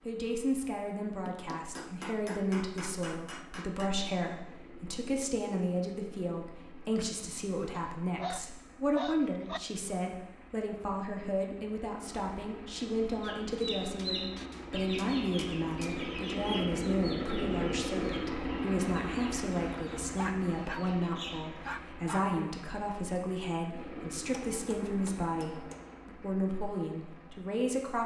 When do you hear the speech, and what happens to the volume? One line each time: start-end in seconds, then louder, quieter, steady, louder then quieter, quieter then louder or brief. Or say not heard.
0.1-28.0 steady.